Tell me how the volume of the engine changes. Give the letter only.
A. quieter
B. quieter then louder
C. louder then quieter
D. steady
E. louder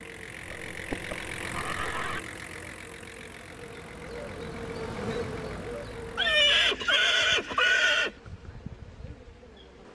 A.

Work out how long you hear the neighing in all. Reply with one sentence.
The neighing can be heard for 4 seconds in total.